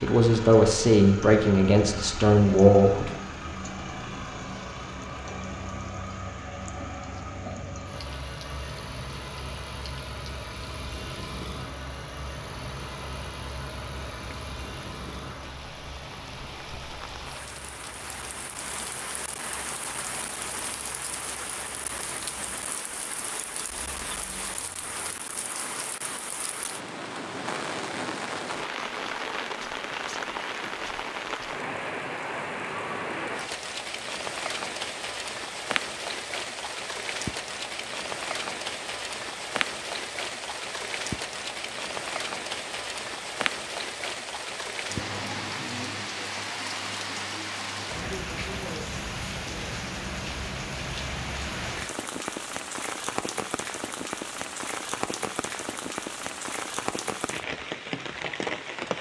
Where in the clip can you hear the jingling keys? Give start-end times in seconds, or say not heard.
not heard.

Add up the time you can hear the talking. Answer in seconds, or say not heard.
3 s.